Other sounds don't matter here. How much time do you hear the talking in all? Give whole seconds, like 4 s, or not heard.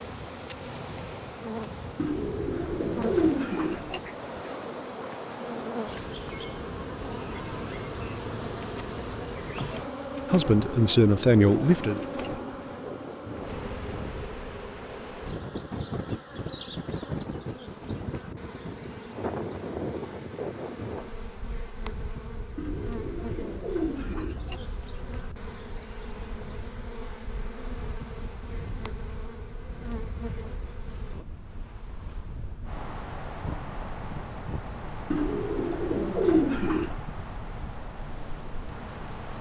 2 s.